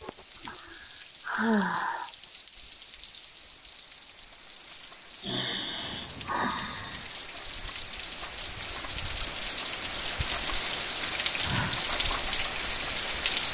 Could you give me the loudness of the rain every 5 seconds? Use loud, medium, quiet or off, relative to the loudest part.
quiet, medium, loud.